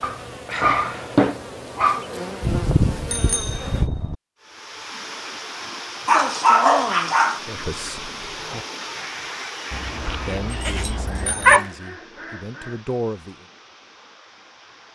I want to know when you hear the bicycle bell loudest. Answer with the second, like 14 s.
3 s.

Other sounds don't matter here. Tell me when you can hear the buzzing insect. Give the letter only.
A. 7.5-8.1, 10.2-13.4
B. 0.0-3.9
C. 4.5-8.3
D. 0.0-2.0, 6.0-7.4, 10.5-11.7
B.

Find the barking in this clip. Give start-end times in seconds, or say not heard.
0.0-2.0, 6.0-7.4, 10.5-11.7.